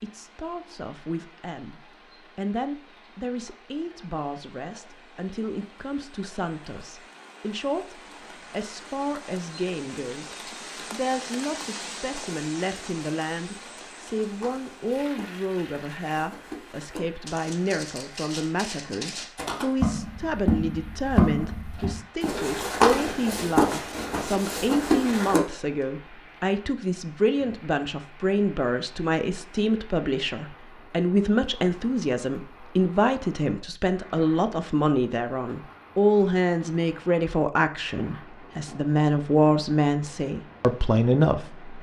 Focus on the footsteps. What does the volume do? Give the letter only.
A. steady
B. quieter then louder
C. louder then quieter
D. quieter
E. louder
E.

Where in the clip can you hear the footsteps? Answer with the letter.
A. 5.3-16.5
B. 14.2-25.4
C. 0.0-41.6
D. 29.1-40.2
B.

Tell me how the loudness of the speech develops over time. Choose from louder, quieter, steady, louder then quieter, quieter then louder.
louder.